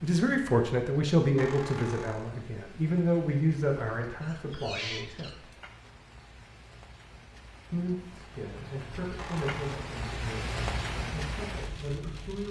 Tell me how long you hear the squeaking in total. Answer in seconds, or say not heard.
3 s.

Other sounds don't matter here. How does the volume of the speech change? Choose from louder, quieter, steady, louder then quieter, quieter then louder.
quieter.